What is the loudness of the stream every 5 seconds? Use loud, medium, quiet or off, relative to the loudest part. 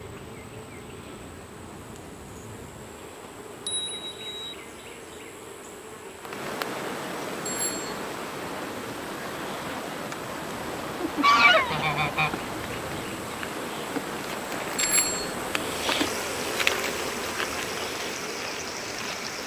quiet, loud, loud, loud.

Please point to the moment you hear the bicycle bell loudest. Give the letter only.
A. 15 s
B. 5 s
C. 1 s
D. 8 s
A.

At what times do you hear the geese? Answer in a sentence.
The geese can be heard from 11.0 to 12.4 s.